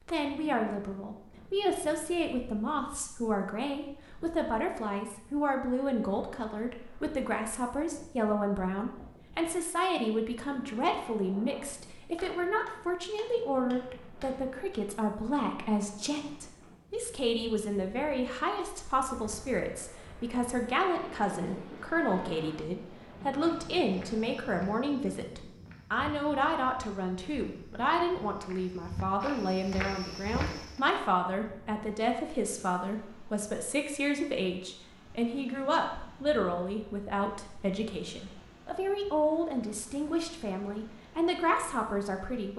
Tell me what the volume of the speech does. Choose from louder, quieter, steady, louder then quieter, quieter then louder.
steady.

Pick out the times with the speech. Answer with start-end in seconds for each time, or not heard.
0.0-42.5.